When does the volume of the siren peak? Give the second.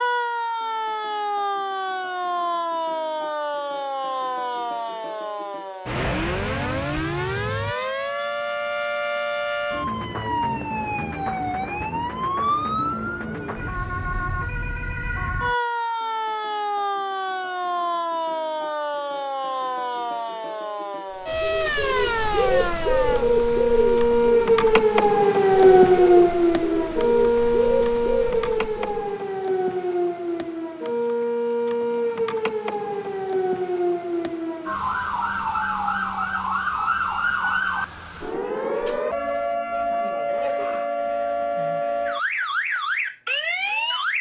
26 s.